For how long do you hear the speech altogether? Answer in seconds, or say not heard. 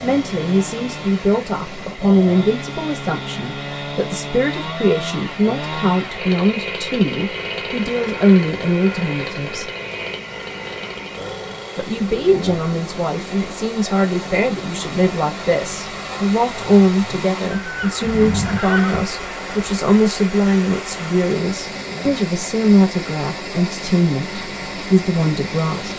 24 s.